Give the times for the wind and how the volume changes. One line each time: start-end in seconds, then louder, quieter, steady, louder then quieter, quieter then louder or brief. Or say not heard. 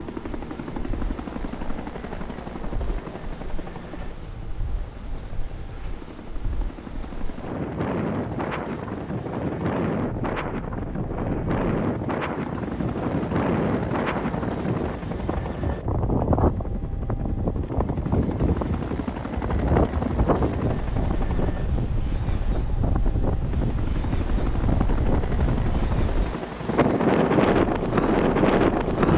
0.0-29.1 louder.